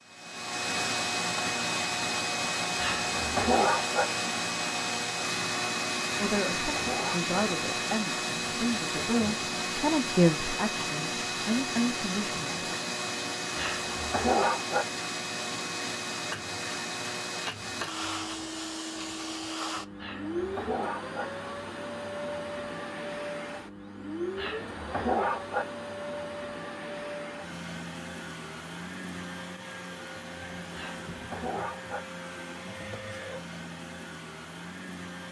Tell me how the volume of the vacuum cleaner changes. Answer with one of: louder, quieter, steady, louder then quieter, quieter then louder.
quieter.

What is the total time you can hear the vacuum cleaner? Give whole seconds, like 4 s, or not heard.
35 s.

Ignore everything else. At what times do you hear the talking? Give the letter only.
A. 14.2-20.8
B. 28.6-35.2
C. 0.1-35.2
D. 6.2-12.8
D.